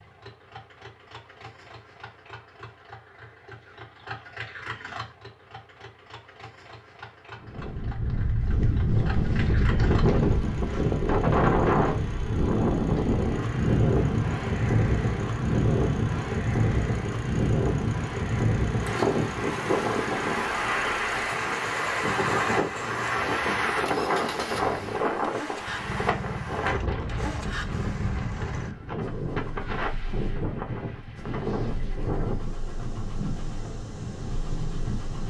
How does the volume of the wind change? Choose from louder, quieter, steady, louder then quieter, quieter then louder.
quieter.